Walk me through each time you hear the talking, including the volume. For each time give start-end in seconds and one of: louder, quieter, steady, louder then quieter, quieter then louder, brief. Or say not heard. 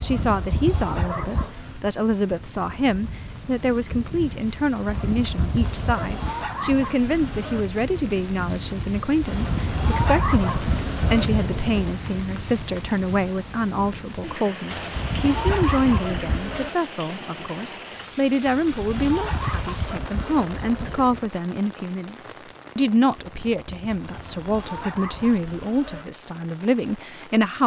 0.0-27.6 steady.